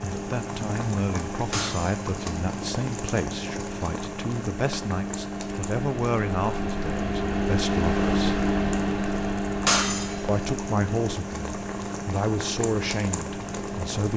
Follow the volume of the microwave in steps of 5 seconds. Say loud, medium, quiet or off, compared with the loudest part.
medium, loud, medium.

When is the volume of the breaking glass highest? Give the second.
10 s.